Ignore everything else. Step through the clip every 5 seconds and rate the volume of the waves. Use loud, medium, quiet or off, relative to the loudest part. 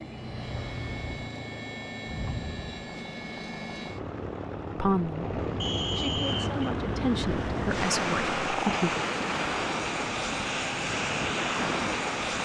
off, loud, loud.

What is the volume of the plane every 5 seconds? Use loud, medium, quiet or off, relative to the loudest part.
medium, loud, loud.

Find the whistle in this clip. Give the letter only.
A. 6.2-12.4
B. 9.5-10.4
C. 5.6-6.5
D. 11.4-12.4
C.